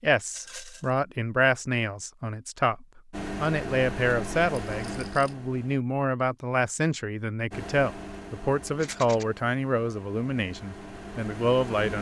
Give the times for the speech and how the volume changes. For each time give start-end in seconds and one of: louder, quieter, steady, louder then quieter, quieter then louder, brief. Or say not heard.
0.0-11.9 steady.